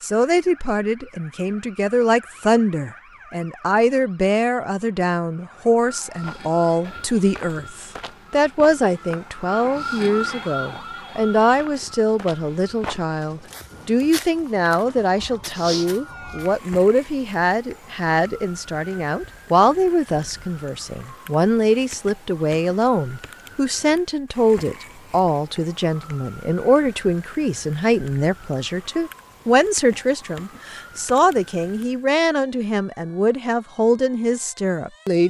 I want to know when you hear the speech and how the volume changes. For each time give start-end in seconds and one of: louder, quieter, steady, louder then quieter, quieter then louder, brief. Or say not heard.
0.0-35.2 steady.